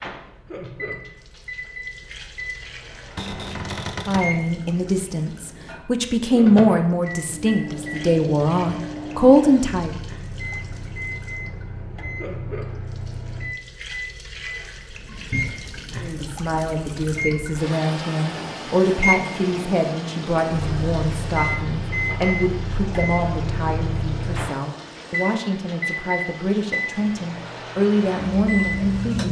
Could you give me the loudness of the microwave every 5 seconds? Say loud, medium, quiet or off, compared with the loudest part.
medium, medium, medium, loud, loud, loud.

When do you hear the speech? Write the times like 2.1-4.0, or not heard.
4.0-9.9, 16.0-29.2.